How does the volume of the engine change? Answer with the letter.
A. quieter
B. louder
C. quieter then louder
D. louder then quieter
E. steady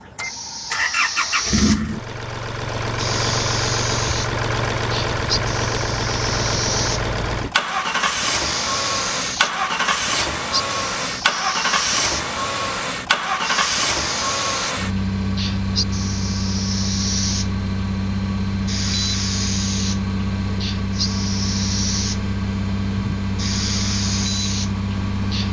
E.